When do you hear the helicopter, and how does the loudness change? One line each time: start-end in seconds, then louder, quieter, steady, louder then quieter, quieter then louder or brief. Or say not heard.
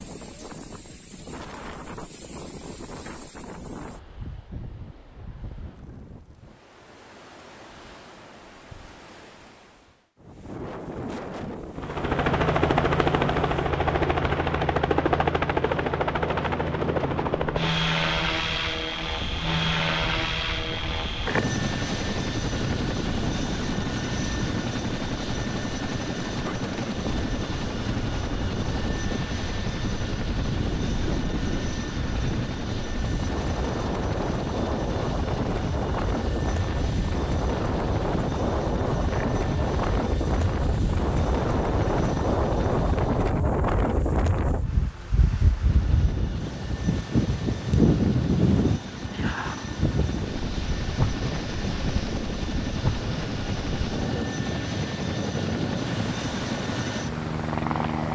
11.8-43.3 quieter
45.4-58.1 louder.